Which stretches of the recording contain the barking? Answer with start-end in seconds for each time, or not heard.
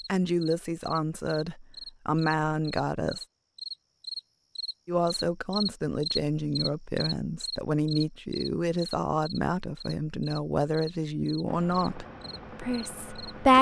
not heard.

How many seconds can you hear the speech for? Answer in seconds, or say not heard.
12 s.